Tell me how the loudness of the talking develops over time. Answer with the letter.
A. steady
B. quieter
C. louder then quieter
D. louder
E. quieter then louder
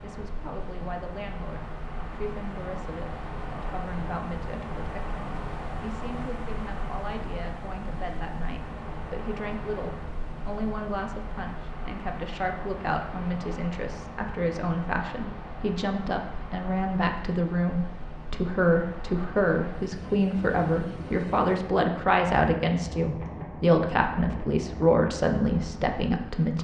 D.